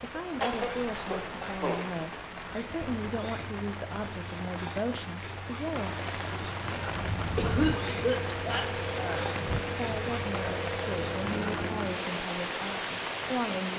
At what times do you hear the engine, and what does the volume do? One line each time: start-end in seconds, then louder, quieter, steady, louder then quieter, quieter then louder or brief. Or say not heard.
6.8-12.1 steady.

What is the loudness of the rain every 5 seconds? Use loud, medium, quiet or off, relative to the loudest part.
medium, loud, loud.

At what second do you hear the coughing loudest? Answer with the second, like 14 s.
8 s.